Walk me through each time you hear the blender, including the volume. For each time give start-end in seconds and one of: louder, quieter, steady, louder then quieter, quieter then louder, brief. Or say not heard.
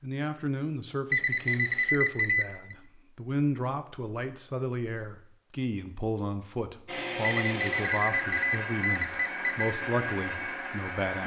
6.8-11.2 steady.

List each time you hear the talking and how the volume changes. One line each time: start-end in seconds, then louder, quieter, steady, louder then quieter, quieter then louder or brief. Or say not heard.
0.0-11.2 steady.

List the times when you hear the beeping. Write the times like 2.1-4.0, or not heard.
1.1-2.8, 7.2-9.7.